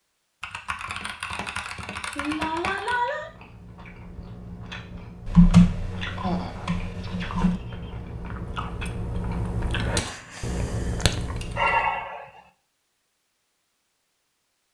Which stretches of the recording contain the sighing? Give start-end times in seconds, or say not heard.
2.1-3.3, 6.2-7.9, 11.0-12.2.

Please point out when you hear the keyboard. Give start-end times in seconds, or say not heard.
0.4-3.0, 5.2-7.5, 9.9-11.8.